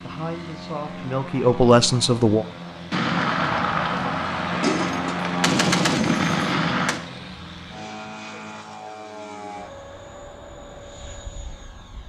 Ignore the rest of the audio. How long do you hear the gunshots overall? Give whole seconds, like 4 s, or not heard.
4 s.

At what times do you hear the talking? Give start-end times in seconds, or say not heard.
0.0-2.5.